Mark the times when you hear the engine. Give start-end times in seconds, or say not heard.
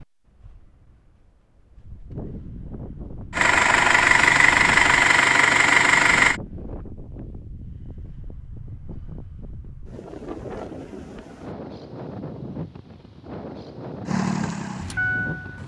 3.3-6.4, 14.1-15.6.